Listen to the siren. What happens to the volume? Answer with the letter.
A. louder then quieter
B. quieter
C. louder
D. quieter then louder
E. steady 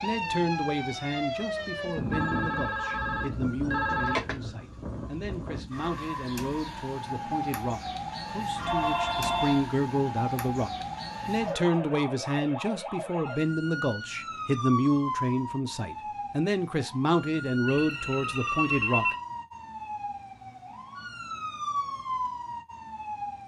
E.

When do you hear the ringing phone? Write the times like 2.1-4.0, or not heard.
2.1-4.3, 8.6-9.7, 17.6-19.1.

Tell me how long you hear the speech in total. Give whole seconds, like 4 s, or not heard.
19 s.